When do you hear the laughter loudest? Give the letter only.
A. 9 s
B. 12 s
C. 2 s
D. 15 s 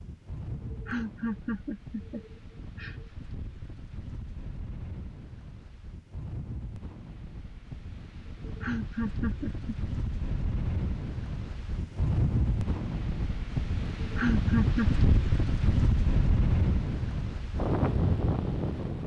D.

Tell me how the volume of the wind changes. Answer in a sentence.
The volume of the wind goes up.